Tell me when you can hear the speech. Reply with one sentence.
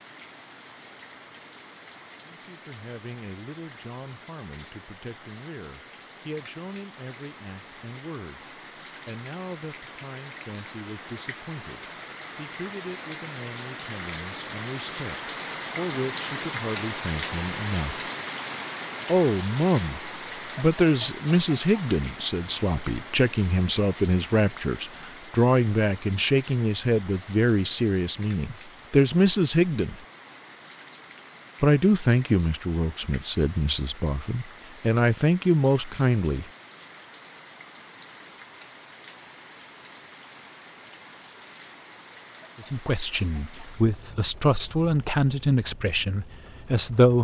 You can hear the speech from 2.2 to 18.1 s, from 19.1 to 29.9 s, from 31.6 to 36.5 s and from 42.6 to 47.1 s.